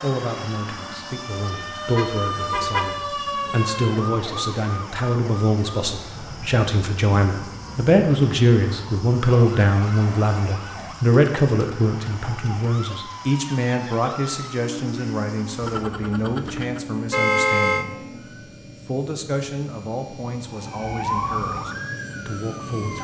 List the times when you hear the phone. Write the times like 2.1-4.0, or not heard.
not heard.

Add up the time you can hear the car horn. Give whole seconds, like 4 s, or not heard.
3 s.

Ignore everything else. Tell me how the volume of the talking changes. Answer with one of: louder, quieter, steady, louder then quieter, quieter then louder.
louder then quieter.